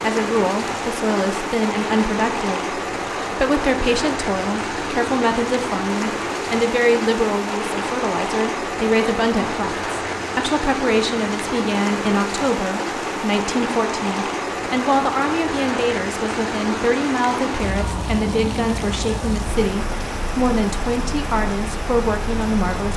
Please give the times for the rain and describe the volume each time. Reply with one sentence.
The rain can be heard from 0.0 to 22.9 s, at a steady volume.